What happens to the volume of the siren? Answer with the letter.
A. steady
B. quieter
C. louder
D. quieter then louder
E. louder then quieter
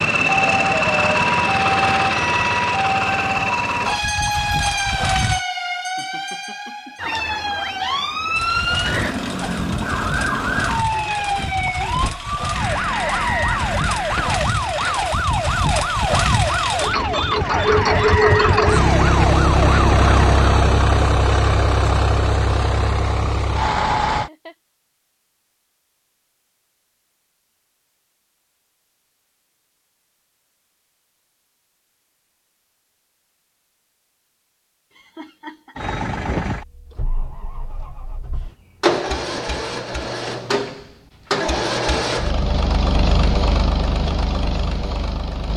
A.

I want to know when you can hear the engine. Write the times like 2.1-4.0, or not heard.
0.0-5.5, 8.3-24.3, 35.8-45.5.